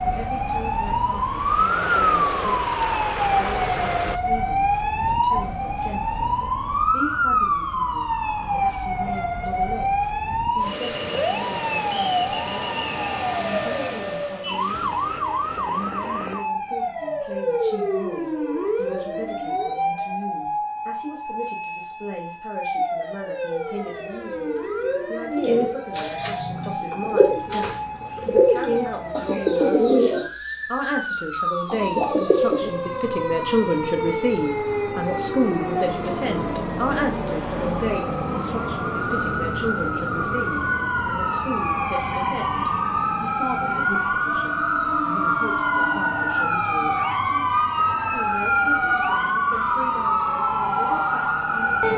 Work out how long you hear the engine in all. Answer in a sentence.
The engine can be heard for 4 seconds in total.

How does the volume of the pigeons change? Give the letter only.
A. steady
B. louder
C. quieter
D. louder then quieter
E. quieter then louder
D.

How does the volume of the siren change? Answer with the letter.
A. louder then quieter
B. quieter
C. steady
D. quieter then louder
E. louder
D.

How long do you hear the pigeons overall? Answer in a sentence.
You can hear the pigeons for 7 seconds altogether.